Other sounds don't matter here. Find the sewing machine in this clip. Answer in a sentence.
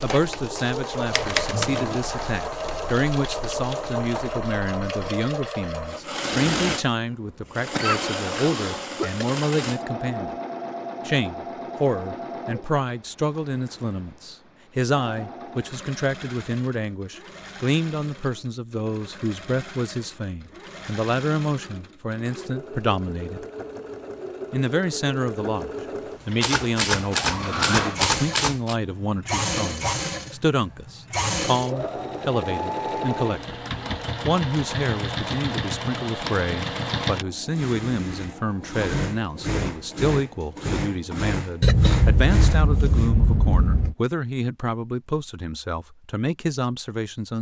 The sewing machine can be heard from 0.0 to 43.1 s.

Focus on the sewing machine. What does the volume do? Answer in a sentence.
The loudness of the sewing machine goes down, then up.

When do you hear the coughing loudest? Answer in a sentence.
The loudest moment of the coughing is at 42 seconds.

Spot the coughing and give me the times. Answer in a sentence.
You can hear the coughing from 7.7 to 9.2 s and from 41.6 to 44.0 s.